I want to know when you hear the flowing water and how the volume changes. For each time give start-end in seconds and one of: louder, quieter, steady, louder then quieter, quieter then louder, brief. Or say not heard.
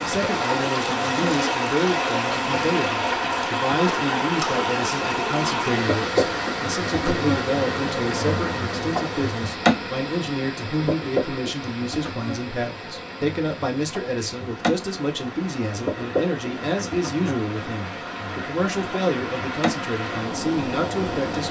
0.0-21.4 quieter then louder.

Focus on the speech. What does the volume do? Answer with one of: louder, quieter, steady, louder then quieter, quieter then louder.
steady.